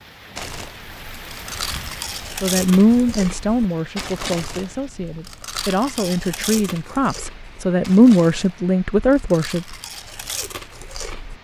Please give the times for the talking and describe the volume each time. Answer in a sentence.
The talking can be heard from 2.4 to 9.7 s, getting quieter then louder.